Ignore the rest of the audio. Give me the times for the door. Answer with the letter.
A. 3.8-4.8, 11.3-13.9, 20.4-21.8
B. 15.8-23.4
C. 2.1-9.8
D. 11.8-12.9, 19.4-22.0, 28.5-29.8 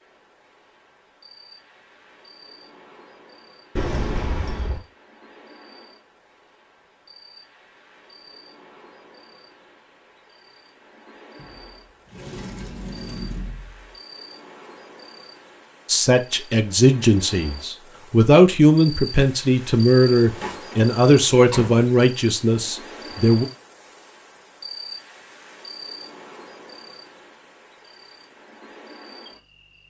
A.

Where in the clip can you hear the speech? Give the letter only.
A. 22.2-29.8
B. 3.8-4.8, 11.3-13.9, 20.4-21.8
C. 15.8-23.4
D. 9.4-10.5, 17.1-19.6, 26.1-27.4
C.